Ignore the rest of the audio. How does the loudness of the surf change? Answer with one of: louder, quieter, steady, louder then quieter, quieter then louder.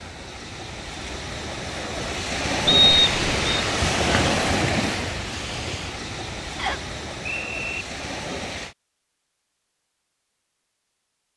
louder then quieter.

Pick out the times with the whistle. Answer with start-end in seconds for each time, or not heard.
2.6-3.6, 6.5-7.8.